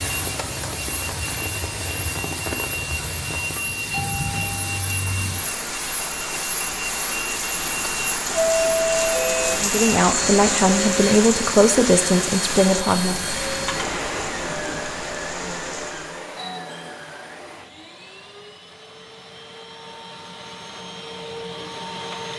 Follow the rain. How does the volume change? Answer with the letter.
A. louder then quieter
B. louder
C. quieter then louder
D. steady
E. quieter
A.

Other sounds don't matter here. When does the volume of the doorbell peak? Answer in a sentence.
The loudest moment of the doorbell is at 9 seconds.